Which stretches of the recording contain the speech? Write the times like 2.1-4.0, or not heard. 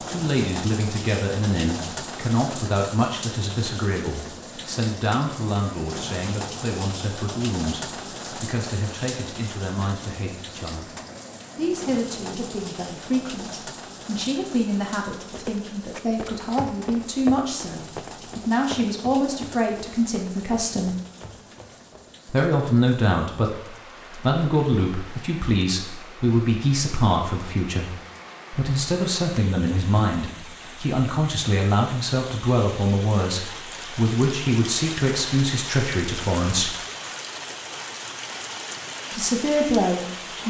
0.1-10.9, 11.6-20.9, 22.2-23.5, 24.1-36.8, 39.1-40.4.